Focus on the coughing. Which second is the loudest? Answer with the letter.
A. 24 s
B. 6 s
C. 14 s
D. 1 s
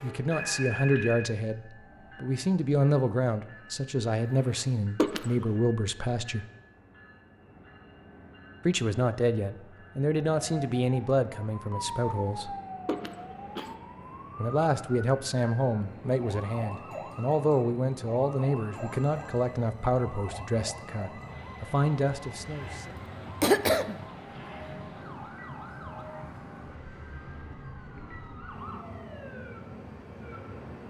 A.